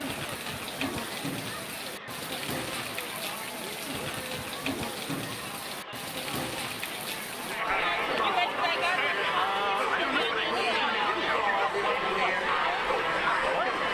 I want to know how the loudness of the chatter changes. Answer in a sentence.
The volume of the chatter goes up.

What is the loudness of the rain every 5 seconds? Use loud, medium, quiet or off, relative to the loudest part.
loud, loud, off.